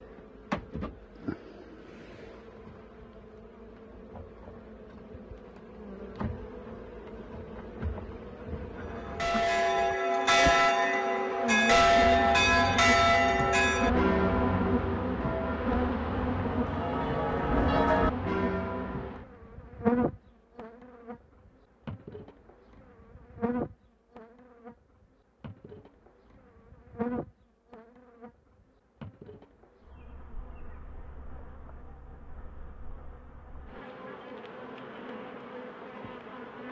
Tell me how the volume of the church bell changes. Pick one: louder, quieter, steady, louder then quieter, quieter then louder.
quieter then louder.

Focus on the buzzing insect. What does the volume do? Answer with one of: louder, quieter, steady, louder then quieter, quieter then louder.
louder then quieter.